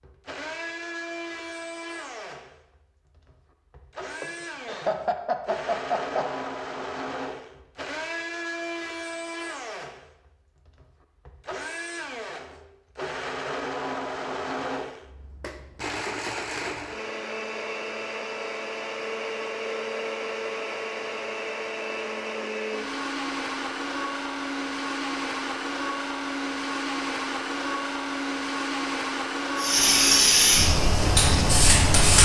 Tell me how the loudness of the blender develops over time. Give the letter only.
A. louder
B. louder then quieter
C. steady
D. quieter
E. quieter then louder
A.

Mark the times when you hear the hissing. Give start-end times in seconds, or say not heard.
29.6-32.1.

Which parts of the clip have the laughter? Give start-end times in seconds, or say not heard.
4.2-6.3.